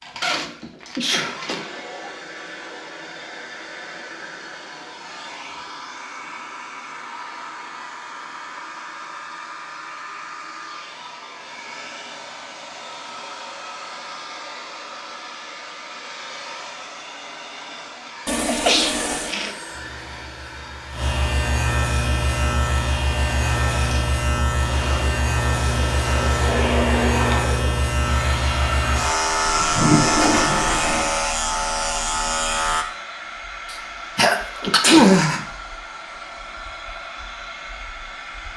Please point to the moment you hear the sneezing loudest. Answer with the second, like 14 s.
35 s.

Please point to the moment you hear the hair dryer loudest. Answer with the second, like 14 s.
27 s.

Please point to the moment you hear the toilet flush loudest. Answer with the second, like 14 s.
30 s.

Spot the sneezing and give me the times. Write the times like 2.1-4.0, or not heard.
0.4-1.4, 18.4-19.6, 33.7-35.5.